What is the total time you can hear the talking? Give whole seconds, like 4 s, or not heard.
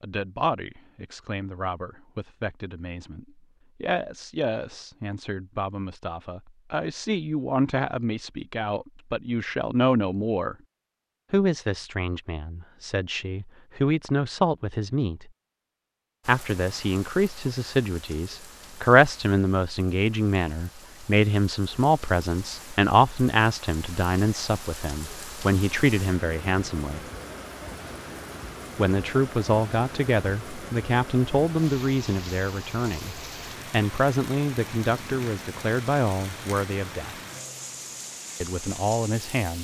35 s.